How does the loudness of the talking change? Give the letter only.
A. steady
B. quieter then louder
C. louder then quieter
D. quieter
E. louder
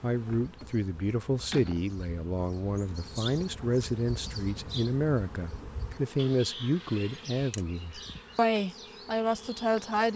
A.